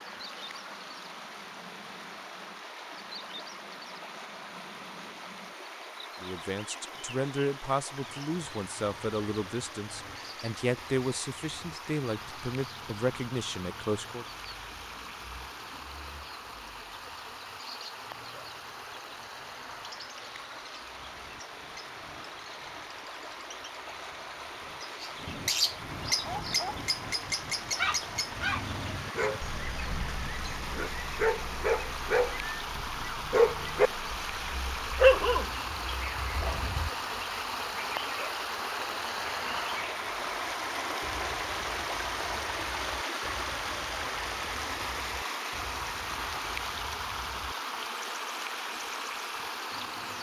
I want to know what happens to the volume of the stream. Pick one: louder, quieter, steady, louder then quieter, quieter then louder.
louder.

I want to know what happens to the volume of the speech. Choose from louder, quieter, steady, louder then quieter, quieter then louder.
steady.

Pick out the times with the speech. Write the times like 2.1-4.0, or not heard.
6.2-14.2.